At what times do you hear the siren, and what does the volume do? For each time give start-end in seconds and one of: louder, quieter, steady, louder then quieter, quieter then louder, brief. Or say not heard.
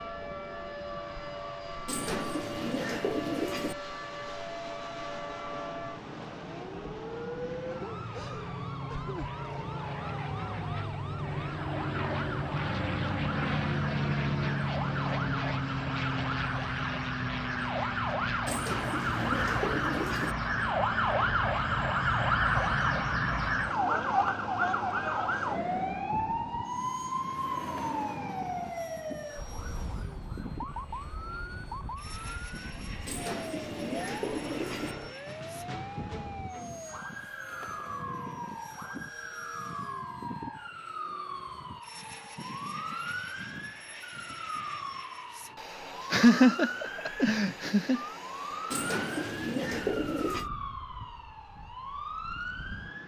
0.0-53.0 louder then quieter.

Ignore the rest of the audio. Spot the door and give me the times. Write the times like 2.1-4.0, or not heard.
not heard.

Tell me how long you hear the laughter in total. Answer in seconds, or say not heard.
2 s.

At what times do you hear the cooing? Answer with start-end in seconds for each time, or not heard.
1.9-3.8, 18.4-20.4, 33.0-35.0, 48.7-50.5.